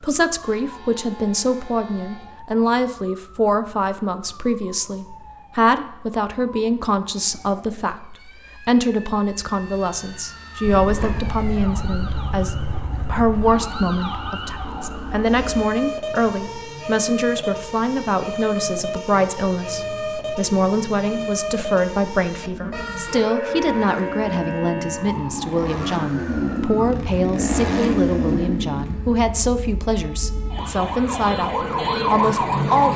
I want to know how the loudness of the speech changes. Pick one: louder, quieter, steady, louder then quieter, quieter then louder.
steady.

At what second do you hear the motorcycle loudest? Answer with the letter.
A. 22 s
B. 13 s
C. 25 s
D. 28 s
D.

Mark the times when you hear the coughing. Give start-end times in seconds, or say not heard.
not heard.